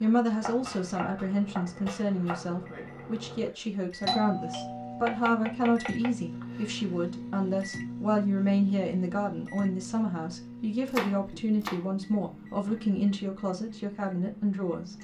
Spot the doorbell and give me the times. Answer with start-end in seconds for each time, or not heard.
4.0-5.1.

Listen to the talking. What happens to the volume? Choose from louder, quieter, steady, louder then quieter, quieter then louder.
steady.